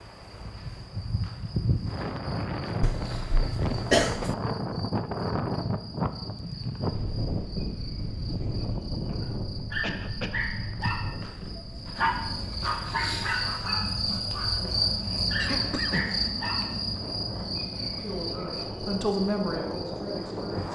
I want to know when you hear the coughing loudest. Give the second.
4 s.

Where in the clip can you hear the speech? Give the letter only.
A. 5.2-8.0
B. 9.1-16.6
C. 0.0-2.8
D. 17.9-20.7
D.